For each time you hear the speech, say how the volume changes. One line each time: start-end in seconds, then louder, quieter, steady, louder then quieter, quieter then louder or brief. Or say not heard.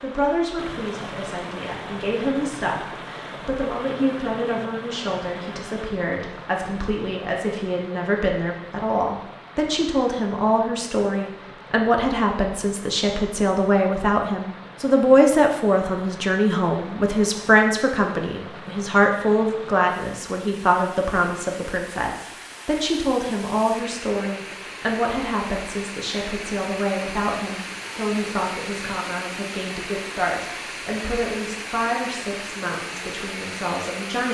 0.0-34.2 louder then quieter.